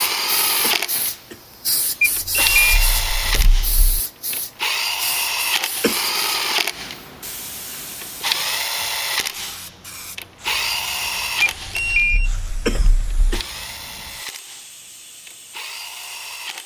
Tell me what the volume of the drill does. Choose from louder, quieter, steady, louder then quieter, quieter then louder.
quieter.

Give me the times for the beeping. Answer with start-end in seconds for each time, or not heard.
2.0-4.0, 11.4-13.4.